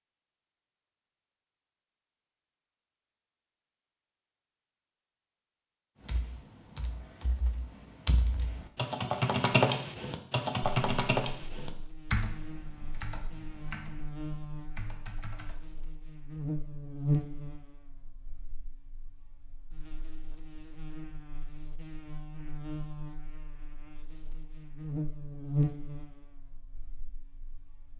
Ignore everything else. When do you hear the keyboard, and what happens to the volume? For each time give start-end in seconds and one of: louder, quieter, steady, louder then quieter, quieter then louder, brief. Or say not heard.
6.0-15.8 louder then quieter.